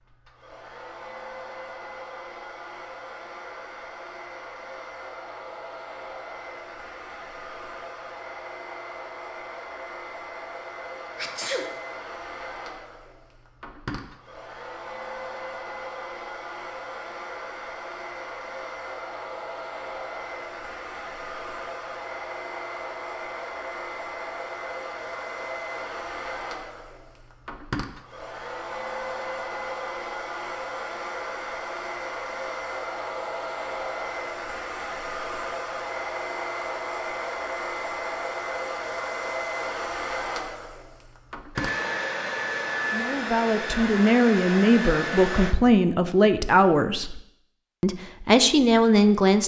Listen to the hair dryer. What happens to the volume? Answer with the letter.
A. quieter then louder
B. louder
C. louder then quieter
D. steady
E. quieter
B.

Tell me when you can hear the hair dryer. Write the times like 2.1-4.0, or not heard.
0.0-45.5.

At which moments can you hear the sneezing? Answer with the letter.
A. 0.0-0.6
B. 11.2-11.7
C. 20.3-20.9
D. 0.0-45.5
B.